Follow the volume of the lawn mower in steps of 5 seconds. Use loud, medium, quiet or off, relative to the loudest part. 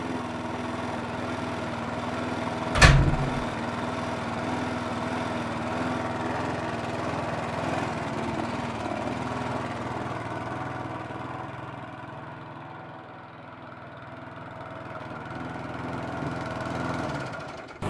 loud, loud, medium, loud.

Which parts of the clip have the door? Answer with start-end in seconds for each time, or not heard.
2.8-3.5.